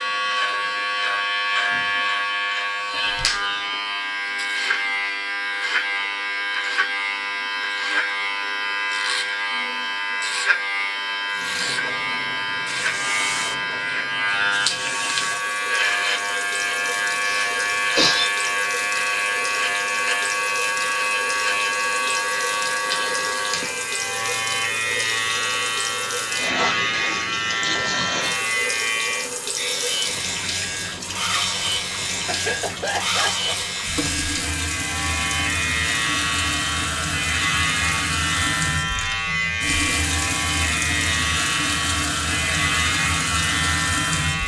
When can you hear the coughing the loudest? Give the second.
18 s.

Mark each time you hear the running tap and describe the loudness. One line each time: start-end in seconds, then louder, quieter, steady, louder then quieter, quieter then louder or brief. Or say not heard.
11.2-44.4 louder.